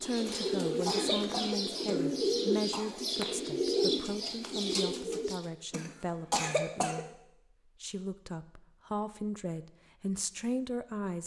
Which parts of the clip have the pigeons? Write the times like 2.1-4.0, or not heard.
0.0-5.5.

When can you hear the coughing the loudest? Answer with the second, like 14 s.
6 s.